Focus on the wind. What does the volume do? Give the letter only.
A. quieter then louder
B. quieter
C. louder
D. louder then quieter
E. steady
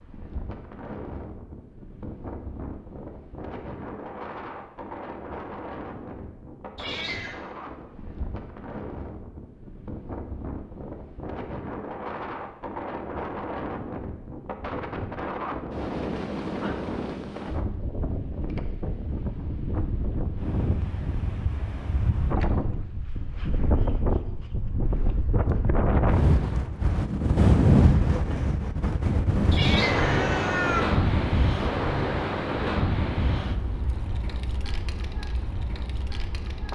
C.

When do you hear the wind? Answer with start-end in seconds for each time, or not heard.
0.0-36.7.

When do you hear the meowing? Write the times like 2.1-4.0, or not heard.
6.8-7.4, 29.5-30.9.